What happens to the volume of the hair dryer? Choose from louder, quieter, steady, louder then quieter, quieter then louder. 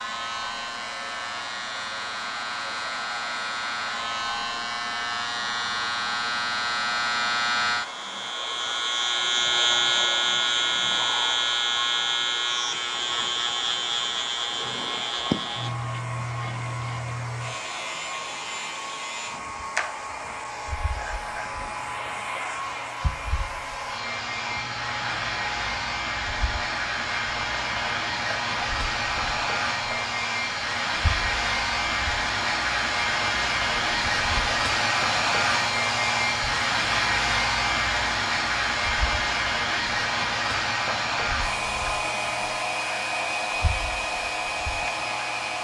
louder.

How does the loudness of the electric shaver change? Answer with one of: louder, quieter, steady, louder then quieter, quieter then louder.
quieter.